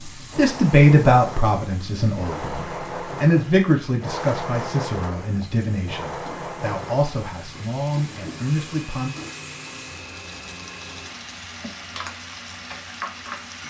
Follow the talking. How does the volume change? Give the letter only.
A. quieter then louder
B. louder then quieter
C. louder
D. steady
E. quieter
E.